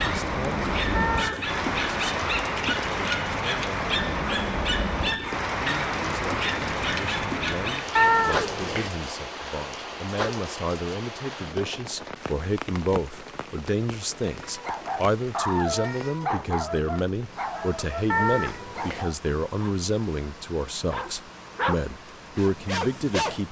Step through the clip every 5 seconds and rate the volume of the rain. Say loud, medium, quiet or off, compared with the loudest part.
loud, loud, medium, quiet, quiet.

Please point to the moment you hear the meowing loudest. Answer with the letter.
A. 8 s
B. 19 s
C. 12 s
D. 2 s
A.